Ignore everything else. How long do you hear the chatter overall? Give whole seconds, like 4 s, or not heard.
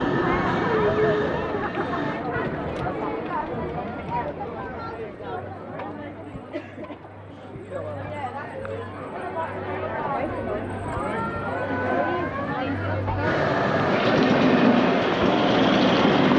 16 s.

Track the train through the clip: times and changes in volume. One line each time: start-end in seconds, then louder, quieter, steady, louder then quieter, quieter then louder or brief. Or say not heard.
0.0-2.2 brief
11.6-16.3 louder.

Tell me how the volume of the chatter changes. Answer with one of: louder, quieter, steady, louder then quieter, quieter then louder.
quieter then louder.